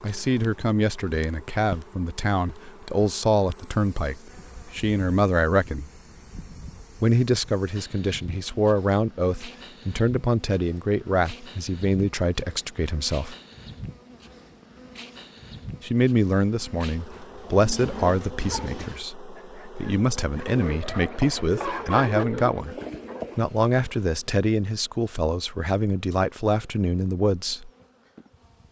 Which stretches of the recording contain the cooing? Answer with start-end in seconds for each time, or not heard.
20.4-23.4.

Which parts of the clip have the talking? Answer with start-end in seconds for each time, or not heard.
0.0-5.8, 7.0-13.3, 15.8-22.8, 23.4-27.7.